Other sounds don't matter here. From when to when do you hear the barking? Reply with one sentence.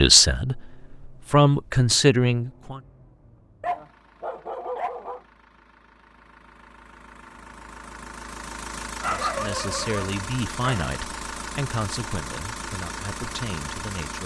The barking can be heard from 3.6 to 5.2 s and from 8.8 to 10.9 s.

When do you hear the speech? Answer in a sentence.
The speech can be heard from 0.0 to 2.8 s and from 9.1 to 14.2 s.